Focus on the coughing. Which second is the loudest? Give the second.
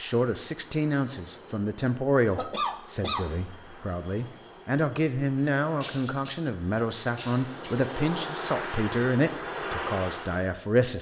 3 s.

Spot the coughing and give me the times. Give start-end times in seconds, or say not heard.
2.3-3.2, 5.8-7.8.